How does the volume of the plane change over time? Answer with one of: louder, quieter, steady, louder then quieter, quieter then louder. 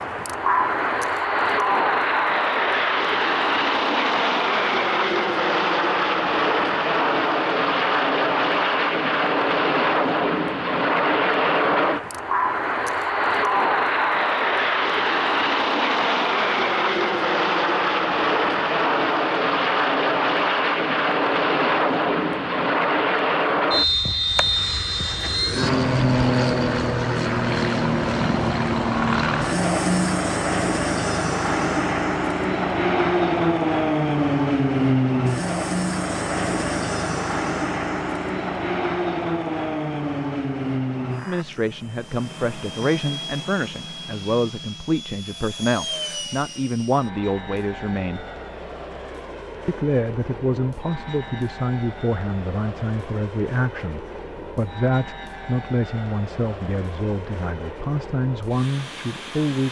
quieter.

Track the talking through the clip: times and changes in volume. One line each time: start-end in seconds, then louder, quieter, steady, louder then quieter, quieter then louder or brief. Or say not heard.
41.2-48.2 steady
49.6-59.6 steady.